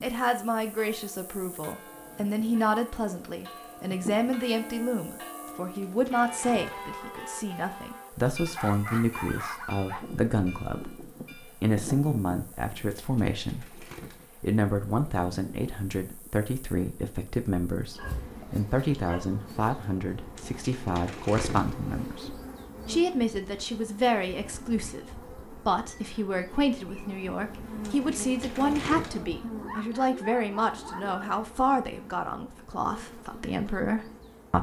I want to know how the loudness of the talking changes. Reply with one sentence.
The loudness of the talking stays about the same.